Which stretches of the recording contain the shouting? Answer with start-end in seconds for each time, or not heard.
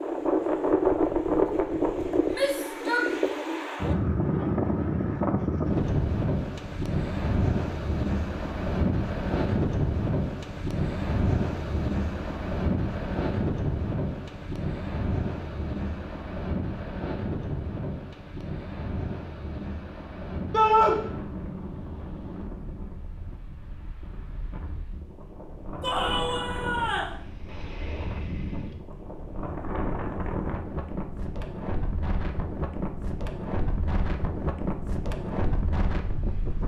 2.3-3.1, 20.5-20.9, 25.8-27.1.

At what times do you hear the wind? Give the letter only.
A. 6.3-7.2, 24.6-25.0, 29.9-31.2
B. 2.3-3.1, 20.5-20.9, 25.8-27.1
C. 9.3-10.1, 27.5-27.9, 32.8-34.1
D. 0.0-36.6
D.